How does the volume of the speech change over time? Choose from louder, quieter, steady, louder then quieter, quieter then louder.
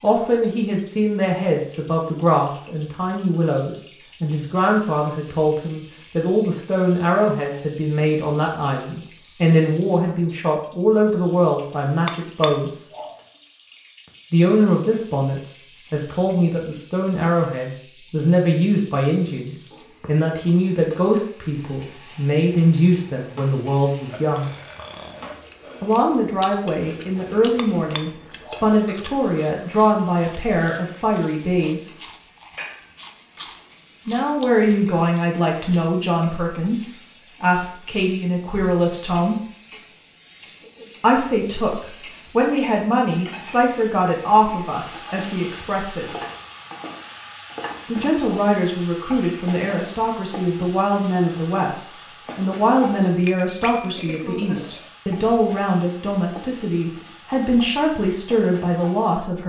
steady.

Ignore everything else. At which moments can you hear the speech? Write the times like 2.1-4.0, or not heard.
0.0-12.7, 14.3-24.5, 25.8-32.0, 34.0-39.5, 41.0-46.1, 47.9-59.4.